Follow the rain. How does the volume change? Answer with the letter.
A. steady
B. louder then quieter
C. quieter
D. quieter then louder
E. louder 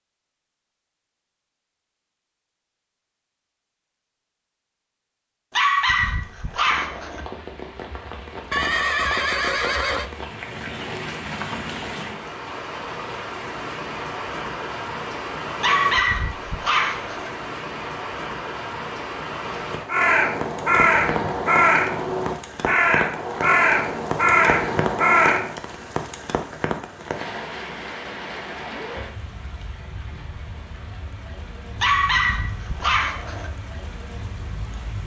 C.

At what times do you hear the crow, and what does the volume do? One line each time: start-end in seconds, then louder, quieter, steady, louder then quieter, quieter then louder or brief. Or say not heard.
19.9-25.6 steady.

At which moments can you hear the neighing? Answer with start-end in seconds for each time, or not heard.
8.5-10.1.